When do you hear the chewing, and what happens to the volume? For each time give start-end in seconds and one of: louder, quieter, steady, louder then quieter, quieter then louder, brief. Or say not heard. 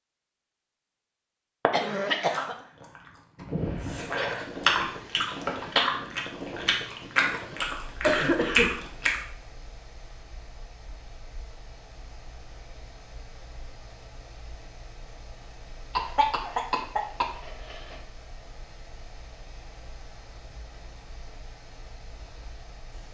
2.1-9.2 louder.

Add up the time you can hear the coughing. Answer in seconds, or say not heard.
4 s.